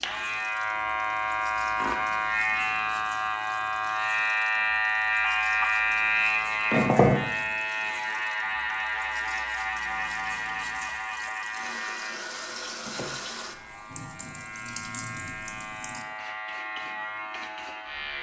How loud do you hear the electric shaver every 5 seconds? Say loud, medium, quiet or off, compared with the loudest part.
loud, loud, medium, medium.